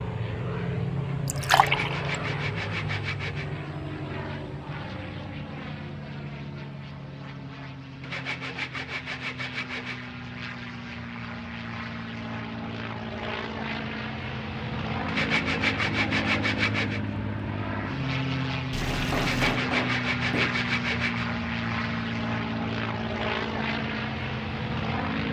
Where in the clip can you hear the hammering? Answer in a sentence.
The hammering can be heard from 18.8 to 20.6 s.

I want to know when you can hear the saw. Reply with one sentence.
You can hear the saw from 1.5 to 3.5 s, from 8.0 to 10.1 s, from 15.1 to 17.0 s and from 19.1 to 21.2 s.